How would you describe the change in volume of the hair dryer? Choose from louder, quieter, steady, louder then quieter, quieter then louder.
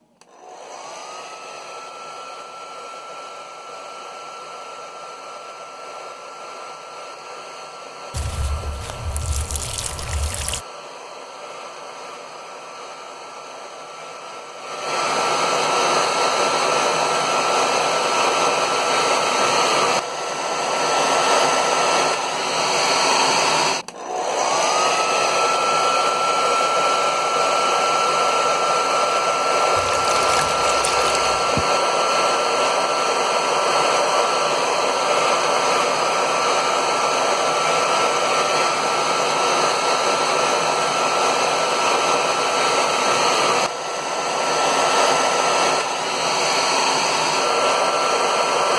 louder.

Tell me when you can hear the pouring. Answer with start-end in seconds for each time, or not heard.
8.1-10.7, 29.8-31.6.